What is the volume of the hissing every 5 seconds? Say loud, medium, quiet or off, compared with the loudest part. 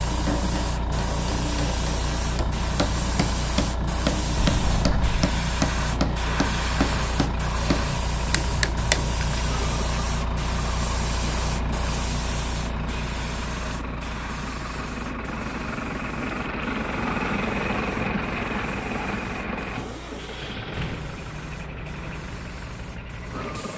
loud, loud, loud, quiet, quiet.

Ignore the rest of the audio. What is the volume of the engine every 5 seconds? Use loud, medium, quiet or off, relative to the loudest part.
medium, medium, medium, loud, medium.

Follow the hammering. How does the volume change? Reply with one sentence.
The loudness of the hammering goes up.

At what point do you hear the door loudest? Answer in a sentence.
The volume of the door peaks at 5 seconds.